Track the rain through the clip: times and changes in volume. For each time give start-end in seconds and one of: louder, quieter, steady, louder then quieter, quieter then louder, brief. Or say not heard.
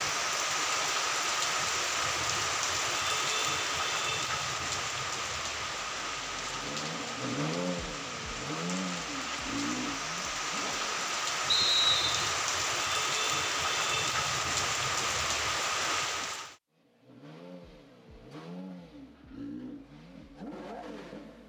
0.0-16.6 quieter then louder.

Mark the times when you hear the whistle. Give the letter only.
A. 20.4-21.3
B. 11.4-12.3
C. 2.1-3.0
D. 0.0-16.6
B.